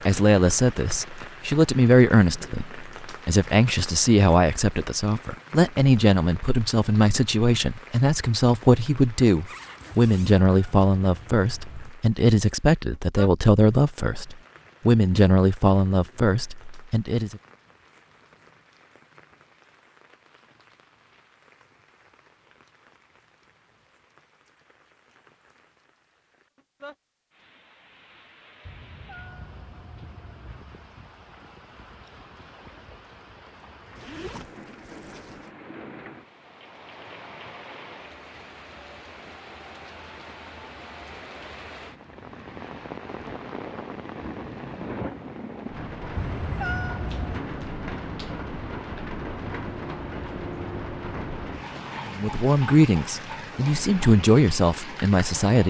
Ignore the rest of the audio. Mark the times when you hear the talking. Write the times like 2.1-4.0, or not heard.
0.1-17.4, 52.0-55.6.